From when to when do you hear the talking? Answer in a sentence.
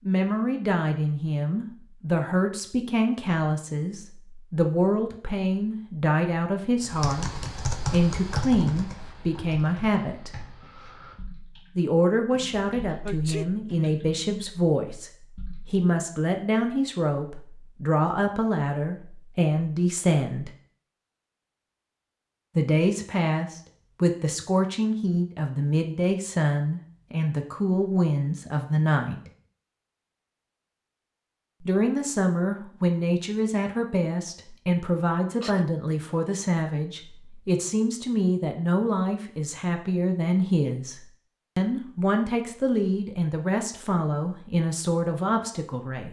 You can hear the talking from 0.1 to 10.3 s, from 11.8 to 15.1 s, from 15.7 to 20.5 s, from 22.6 to 29.3 s and from 31.6 to 46.0 s.